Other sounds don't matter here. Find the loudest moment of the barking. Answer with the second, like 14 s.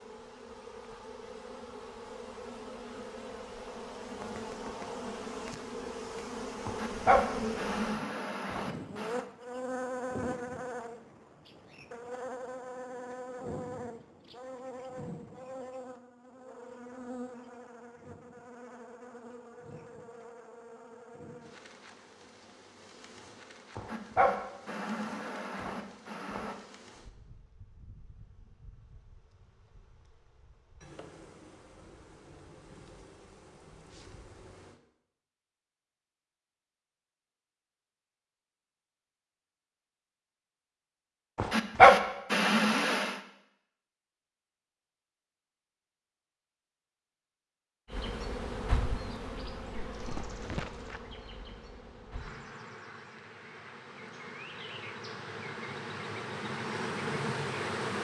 42 s.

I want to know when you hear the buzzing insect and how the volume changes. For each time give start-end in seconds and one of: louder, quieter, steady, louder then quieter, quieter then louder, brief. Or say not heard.
0.0-34.8 quieter
47.9-58.0 quieter then louder.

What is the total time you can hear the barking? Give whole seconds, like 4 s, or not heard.
7 s.